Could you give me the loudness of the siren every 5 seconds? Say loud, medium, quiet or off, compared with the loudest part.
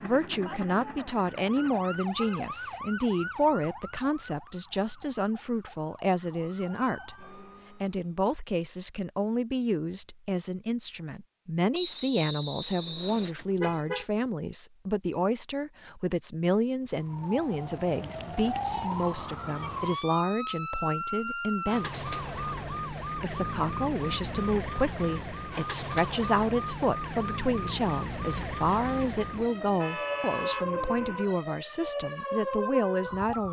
medium, quiet, off, loud, loud, loud, loud.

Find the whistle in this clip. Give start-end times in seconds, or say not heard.
11.7-13.3.